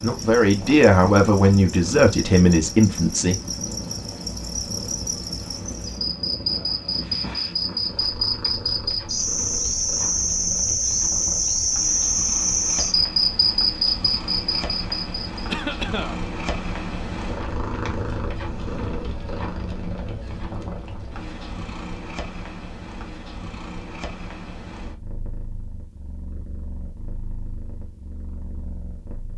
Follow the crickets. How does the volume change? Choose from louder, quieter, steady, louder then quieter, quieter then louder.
louder.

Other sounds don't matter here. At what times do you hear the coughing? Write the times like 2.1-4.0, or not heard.
15.4-16.2.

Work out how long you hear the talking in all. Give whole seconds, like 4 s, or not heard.
3 s.